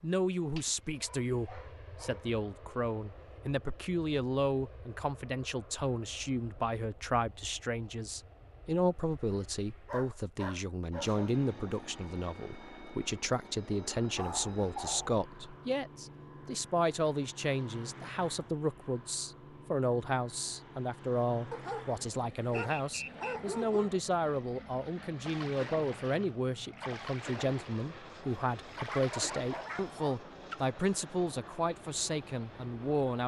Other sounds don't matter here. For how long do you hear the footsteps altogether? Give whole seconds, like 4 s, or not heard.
not heard.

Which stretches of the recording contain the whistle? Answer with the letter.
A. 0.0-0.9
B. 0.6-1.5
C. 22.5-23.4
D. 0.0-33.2
C.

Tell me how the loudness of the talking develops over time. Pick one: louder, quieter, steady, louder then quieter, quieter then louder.
steady.